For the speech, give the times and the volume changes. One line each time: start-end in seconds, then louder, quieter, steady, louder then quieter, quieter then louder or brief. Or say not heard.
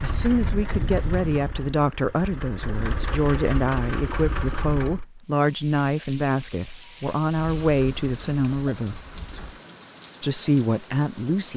0.0-9.0 steady
10.2-11.5 brief.